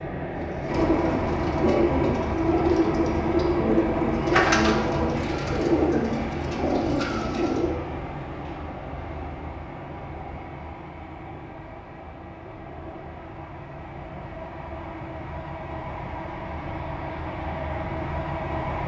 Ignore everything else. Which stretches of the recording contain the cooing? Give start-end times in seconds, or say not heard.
0.3-7.8.